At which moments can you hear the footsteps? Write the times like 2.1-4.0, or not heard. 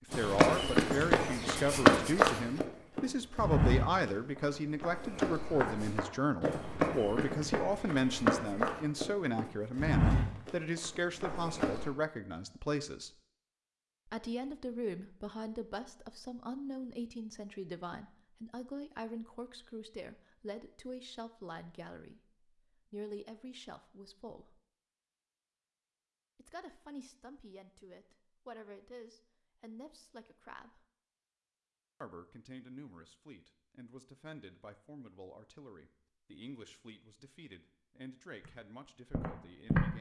0.1-11.9, 39.1-39.9.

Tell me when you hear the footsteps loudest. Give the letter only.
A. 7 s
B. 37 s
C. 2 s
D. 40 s
C.